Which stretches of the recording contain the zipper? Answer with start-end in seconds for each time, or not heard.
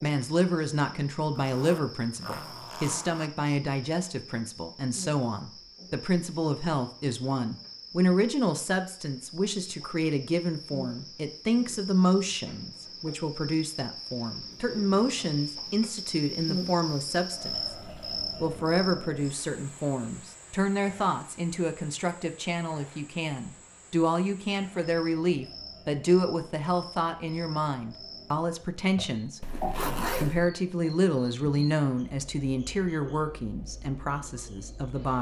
1.4-3.3, 14.4-15.2, 29.4-30.5.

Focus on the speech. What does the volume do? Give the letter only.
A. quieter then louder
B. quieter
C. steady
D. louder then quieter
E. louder
C.